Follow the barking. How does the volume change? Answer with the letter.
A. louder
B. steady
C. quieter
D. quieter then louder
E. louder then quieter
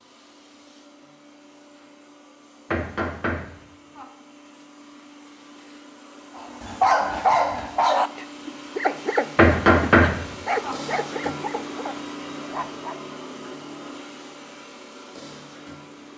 C.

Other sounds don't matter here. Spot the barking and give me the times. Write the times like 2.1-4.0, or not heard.
6.3-13.0.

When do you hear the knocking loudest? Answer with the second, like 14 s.
10 s.